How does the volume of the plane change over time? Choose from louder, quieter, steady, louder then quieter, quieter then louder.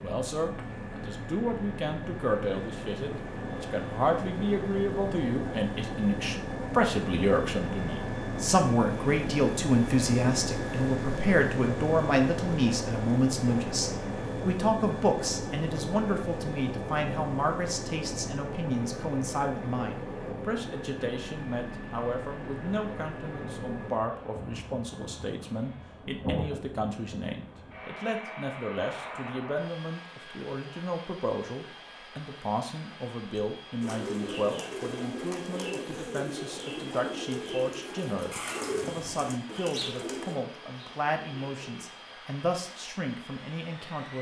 quieter.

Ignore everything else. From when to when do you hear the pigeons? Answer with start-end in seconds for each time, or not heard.
33.8-41.9.